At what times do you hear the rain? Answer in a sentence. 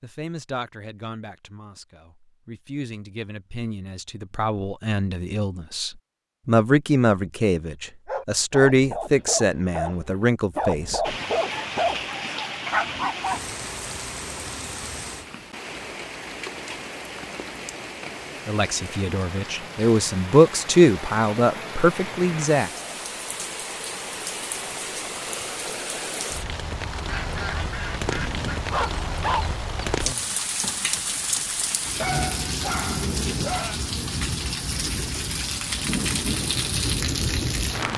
You can hear the rain from 11.0 to 37.9 s.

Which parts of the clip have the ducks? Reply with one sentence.
The ducks can be heard from 27.1 to 28.6 s.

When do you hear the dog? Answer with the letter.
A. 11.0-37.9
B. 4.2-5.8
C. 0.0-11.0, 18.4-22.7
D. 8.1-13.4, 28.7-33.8
D.